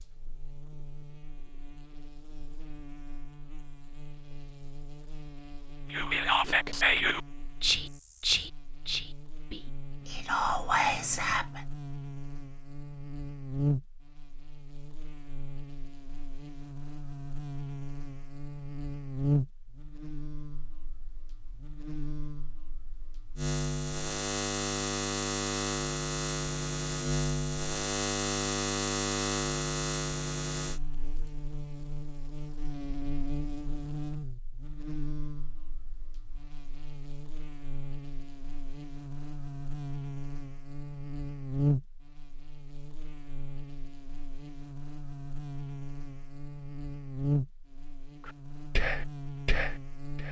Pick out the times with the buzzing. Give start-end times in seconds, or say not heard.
0.0-50.2.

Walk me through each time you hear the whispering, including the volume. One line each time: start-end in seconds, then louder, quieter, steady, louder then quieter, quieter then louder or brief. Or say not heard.
5.9-11.6 quieter then louder
48.2-50.2 brief.